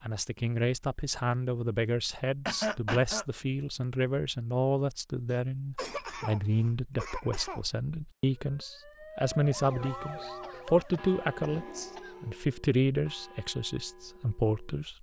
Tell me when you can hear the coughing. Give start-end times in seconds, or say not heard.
2.5-3.2, 5.2-7.7, 10.2-12.2.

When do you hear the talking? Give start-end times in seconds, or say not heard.
0.0-14.9.